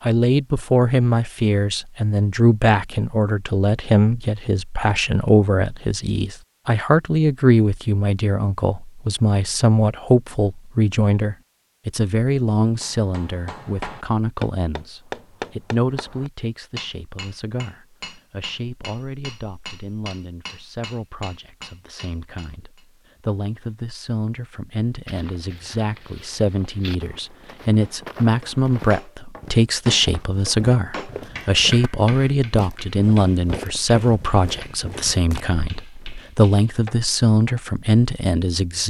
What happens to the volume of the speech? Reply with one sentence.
The volume of the speech goes down, then up.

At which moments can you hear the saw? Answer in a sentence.
You can't hear the saw here.